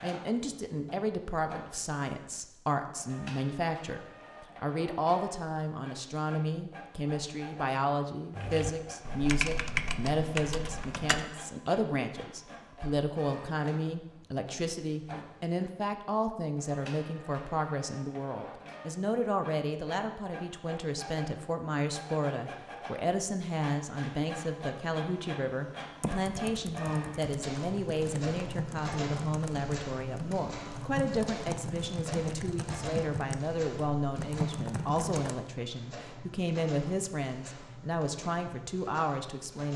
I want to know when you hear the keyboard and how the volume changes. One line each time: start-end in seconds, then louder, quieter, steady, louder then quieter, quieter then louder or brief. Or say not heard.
8.3-11.2 brief
26.0-35.4 louder.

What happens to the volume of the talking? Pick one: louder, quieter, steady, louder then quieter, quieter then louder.
steady.